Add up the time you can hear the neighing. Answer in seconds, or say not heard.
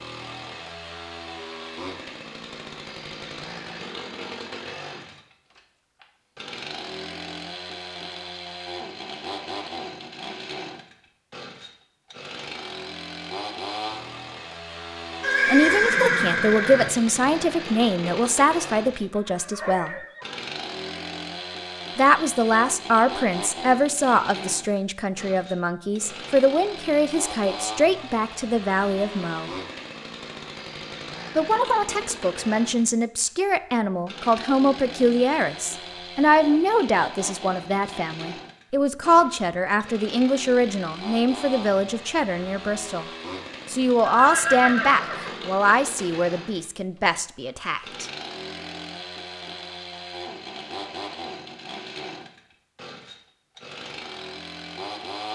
4 s.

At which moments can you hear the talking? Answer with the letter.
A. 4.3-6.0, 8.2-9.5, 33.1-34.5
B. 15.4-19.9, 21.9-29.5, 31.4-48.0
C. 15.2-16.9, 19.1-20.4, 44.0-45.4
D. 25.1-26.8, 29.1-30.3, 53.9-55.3
B.